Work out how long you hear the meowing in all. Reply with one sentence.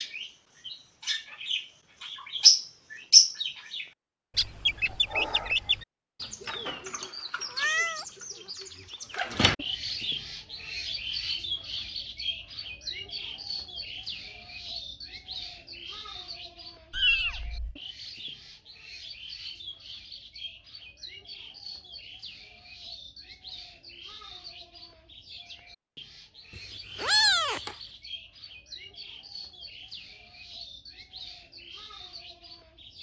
You can hear the meowing for 3 seconds altogether.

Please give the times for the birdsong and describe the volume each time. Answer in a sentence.
You can hear the birdsong from 0.0 to 32.9 s, getting quieter.